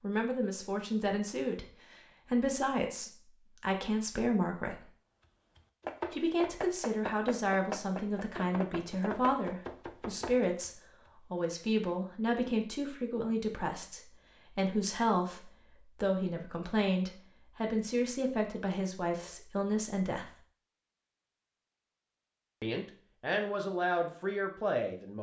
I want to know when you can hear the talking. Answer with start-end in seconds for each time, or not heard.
0.0-4.9, 6.1-20.3, 22.6-25.1.